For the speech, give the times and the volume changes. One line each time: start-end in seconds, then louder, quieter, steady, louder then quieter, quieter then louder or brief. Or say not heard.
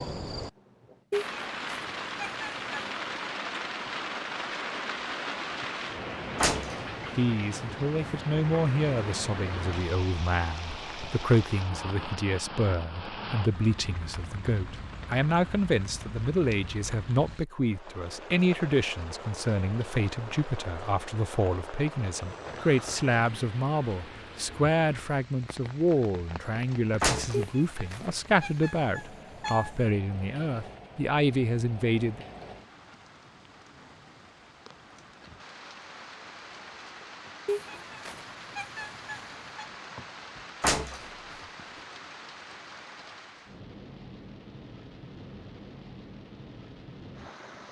7.2-32.2 steady.